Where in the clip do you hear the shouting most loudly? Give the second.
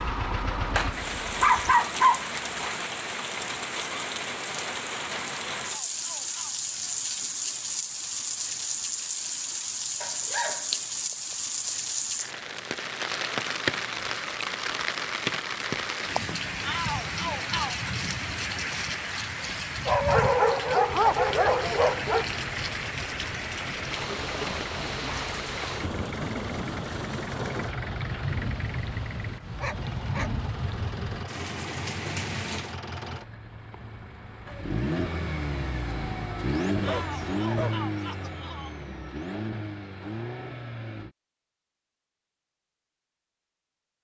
17 s.